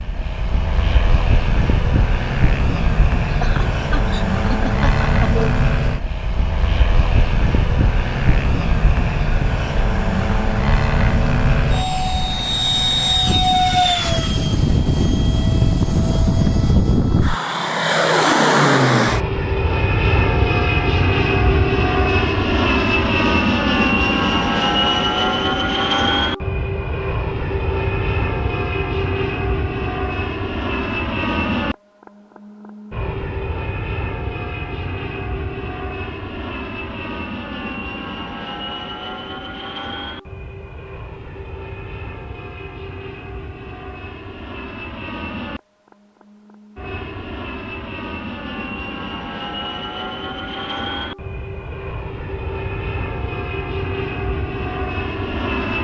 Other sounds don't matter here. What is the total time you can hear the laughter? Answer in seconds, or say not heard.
2 s.